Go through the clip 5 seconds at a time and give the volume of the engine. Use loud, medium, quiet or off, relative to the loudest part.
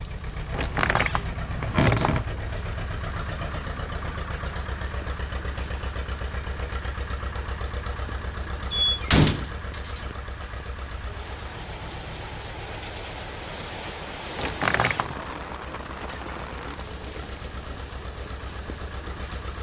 loud, loud, medium, medium.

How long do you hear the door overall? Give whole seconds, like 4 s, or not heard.
4 s.